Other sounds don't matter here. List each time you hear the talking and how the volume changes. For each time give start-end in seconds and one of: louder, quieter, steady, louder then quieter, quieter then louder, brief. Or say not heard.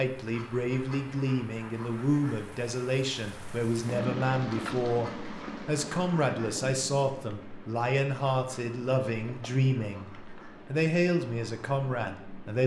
0.0-12.6 steady.